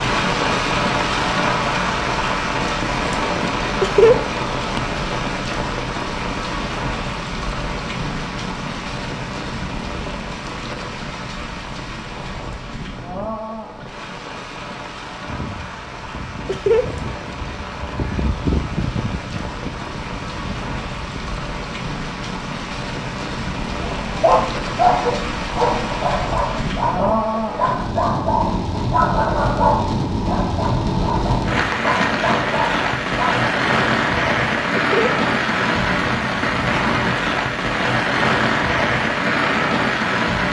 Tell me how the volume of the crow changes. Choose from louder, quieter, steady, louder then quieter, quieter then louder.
louder then quieter.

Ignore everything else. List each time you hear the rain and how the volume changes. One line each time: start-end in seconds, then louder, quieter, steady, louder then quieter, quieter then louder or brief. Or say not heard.
0.0-40.4 quieter then louder.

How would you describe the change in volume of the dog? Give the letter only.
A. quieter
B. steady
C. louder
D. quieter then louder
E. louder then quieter
A.